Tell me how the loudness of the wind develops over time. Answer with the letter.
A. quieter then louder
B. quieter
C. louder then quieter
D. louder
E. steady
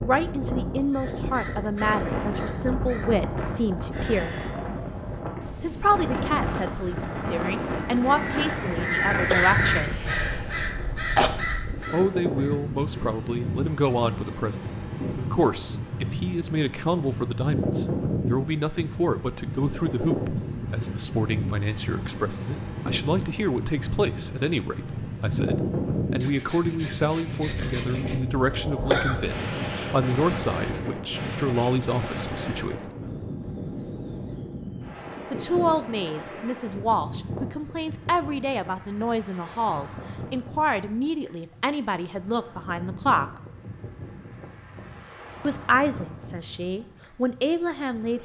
B.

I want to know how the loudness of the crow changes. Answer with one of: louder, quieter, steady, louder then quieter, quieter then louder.
louder then quieter.